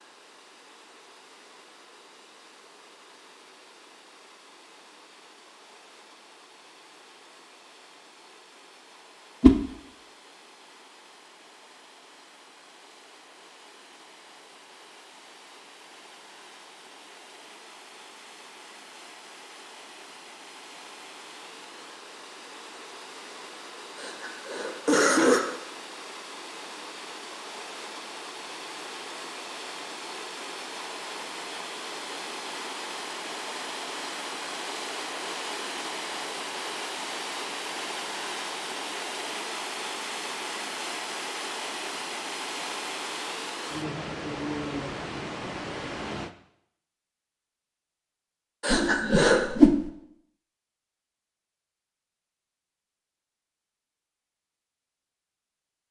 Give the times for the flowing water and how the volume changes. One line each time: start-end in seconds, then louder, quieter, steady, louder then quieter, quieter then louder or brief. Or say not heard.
0.0-46.4 louder.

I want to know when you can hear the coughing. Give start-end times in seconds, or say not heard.
23.9-25.4, 48.6-49.5.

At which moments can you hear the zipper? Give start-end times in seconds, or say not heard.
not heard.